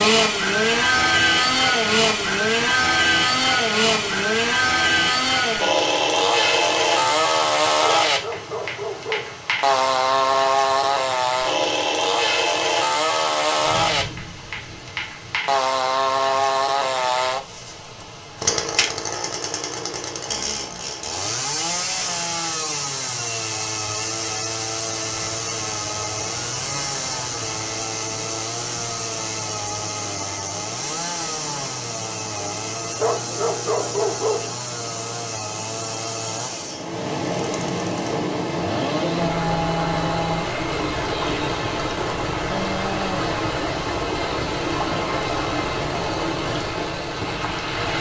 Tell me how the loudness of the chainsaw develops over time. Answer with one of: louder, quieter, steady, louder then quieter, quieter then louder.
quieter.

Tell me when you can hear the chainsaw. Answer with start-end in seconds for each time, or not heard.
0.0-47.7.